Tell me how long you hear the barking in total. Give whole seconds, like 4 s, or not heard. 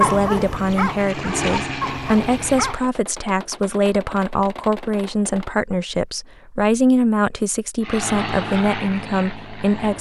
3 s.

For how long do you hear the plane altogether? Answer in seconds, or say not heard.
5 s.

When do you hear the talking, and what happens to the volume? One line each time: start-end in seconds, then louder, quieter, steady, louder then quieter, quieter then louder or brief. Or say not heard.
0.0-9.9 steady.